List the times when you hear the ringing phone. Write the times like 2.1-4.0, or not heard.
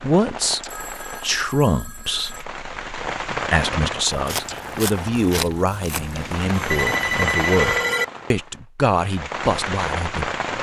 0.7-2.5, 6.5-8.1.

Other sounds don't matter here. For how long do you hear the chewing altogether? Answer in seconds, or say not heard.
3 s.